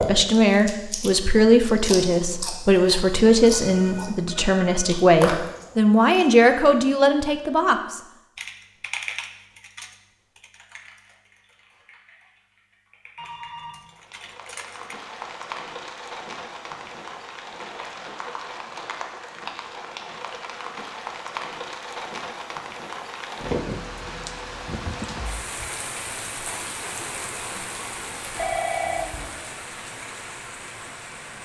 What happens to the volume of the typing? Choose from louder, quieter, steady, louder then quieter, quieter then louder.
quieter then louder.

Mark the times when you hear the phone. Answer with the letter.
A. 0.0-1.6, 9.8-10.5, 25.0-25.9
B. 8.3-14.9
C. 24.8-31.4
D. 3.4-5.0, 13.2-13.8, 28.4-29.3
D.